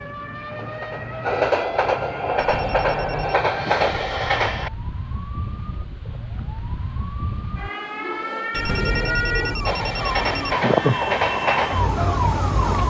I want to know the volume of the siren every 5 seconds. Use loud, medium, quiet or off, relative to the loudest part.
medium, medium, loud.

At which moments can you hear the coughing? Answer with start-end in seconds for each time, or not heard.
not heard.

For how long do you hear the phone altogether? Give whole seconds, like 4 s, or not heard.
3 s.